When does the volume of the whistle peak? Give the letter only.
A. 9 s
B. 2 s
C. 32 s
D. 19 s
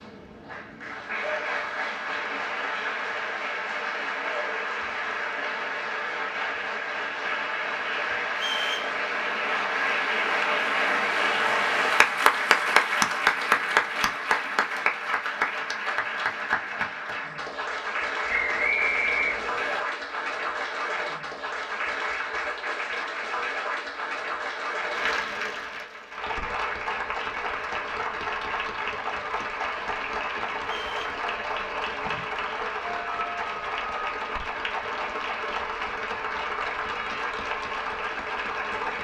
D.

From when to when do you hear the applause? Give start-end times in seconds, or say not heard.
0.0-39.0.